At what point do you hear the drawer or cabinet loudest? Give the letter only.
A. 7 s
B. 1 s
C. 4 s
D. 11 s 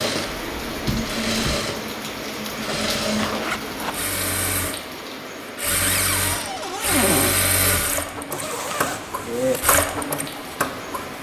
A.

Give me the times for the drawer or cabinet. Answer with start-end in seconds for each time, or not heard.
0.2-1.6, 5.8-7.3.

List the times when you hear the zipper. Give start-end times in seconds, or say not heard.
3.1-4.0, 8.3-9.6.